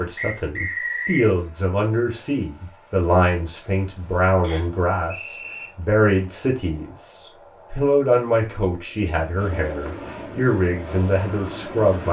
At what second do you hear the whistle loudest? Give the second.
1 s.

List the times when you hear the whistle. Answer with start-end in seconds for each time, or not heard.
0.1-1.3, 4.4-5.7, 9.1-9.9.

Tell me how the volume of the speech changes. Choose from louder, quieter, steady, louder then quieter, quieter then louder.
steady.